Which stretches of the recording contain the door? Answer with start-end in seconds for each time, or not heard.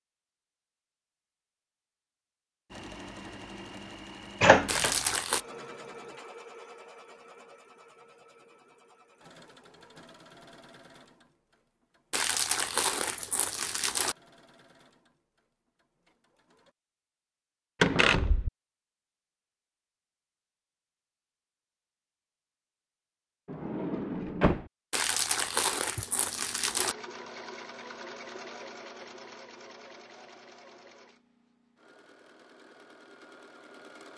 4.4-5.0, 17.8-18.5, 23.4-24.6.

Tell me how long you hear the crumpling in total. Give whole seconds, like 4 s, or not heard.
5 s.